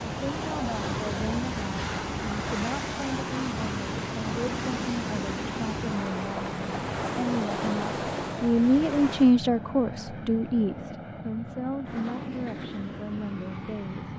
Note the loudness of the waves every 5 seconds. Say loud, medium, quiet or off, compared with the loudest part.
loud, loud, off.